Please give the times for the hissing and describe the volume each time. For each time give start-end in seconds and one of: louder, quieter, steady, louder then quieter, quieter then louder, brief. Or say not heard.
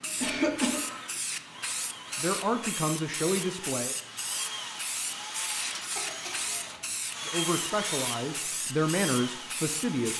0.0-10.1 steady.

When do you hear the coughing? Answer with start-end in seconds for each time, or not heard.
0.2-0.8, 6.0-7.0.